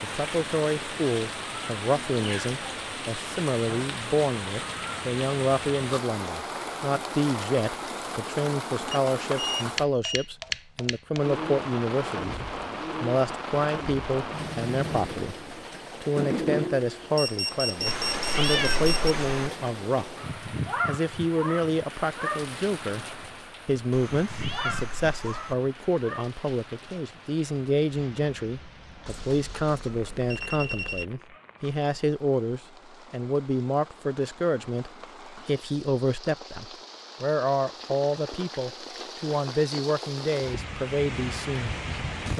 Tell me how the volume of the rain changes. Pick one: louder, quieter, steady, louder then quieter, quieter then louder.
quieter then louder.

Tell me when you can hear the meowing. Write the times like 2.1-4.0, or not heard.
17.9-19.5, 23.9-25.6.